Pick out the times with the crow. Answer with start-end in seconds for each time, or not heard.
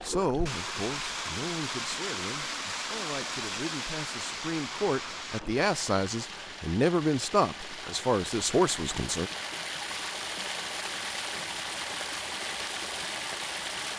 not heard.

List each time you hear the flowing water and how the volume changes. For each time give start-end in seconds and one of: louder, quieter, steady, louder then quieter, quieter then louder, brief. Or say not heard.
0.0-13.9 quieter then louder.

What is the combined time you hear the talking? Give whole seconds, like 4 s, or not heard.
9 s.